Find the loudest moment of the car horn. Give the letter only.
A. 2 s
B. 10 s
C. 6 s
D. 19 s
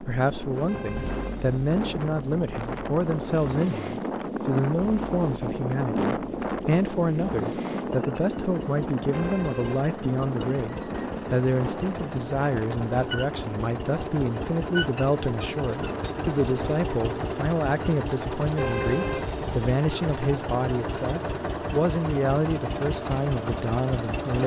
D.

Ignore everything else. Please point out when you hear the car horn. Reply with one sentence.
The car horn can be heard from 0.7 to 1.5 s, from 9.1 to 9.8 s and from 18.6 to 19.8 s.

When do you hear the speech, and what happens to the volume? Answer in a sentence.
You can hear the speech from 0.0 to 24.4 s, at a steady volume.